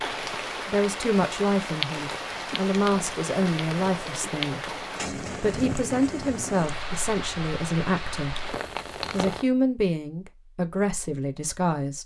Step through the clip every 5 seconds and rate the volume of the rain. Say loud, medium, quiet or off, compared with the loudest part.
loud, loud, off.